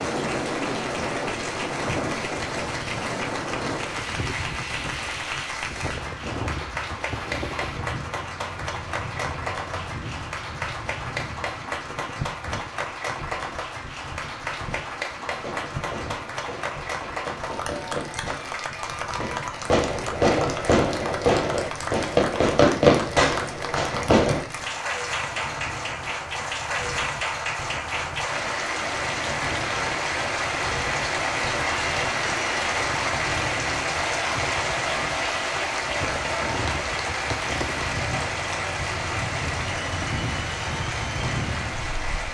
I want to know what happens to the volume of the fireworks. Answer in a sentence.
The loudness of the fireworks goes up.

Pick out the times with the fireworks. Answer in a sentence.
You can hear the fireworks from 15.3 to 24.4 s.